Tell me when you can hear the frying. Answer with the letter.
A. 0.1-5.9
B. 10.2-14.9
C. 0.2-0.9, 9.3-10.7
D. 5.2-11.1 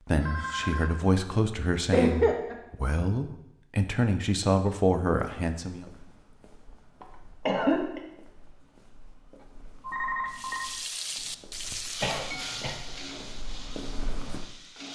B.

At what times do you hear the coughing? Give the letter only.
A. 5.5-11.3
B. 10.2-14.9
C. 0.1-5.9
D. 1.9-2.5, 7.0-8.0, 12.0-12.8
D.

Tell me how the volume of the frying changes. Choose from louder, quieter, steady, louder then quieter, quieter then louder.
quieter.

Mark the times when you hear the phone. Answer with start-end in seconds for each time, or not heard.
0.2-0.9, 9.3-10.7.